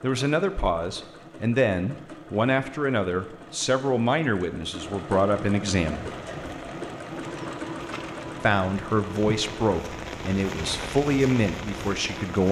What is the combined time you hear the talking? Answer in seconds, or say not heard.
10 s.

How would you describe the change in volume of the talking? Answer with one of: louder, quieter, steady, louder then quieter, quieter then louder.
steady.